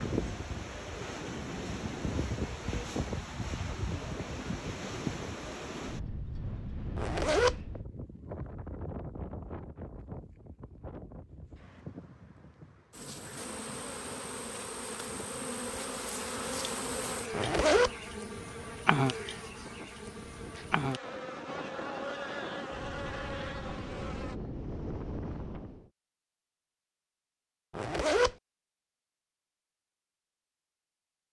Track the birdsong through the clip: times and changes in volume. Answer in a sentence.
You can't hear the birdsong here.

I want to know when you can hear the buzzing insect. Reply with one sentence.
The buzzing insect can be heard from 12.9 to 24.4 s.